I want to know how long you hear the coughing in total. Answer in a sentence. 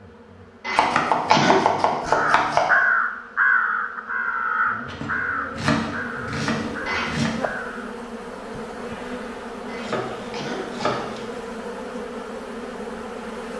The coughing can be heard for 3 seconds in total.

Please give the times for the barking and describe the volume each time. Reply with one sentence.
The barking can't be heard in this clip.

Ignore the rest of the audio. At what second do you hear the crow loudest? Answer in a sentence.
The loudest moment of the crow is at 3 seconds.